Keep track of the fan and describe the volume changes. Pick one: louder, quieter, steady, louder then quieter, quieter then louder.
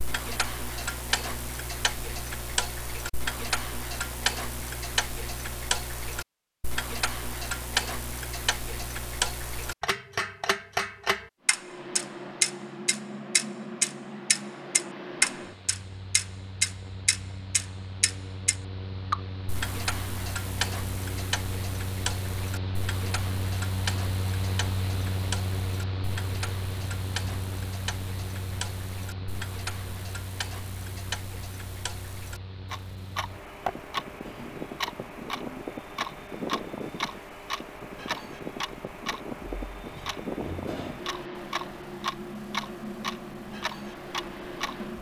steady.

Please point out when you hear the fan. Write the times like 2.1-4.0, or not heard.
11.4-44.9.